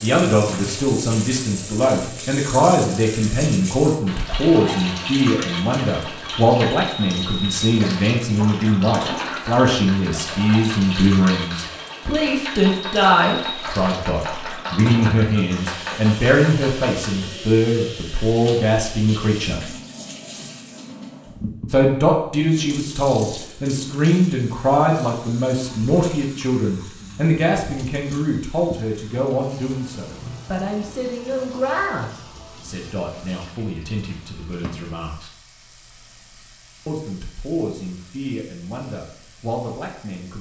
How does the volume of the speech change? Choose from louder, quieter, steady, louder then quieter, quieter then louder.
quieter.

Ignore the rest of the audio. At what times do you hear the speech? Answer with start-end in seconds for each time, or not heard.
0.0-19.6, 21.7-35.3, 36.9-40.3.